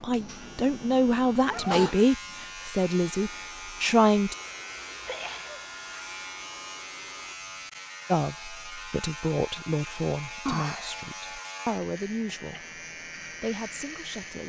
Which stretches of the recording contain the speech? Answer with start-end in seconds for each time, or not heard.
0.0-4.3, 8.1-12.6, 13.4-14.4.